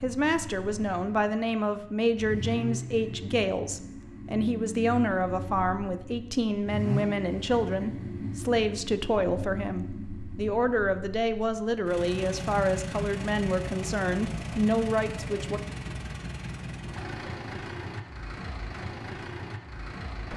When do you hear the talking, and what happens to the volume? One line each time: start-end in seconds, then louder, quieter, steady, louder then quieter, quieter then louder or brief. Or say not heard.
0.0-15.6 steady.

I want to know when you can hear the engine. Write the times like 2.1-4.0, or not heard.
0.0-20.3.